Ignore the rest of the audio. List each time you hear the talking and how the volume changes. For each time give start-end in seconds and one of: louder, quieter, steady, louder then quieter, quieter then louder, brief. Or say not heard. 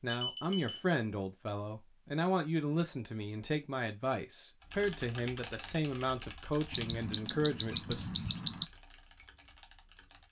0.0-8.1 steady.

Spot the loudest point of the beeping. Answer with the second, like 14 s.
8 s.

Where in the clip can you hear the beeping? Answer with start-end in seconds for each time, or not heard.
0.3-0.8, 6.7-8.7.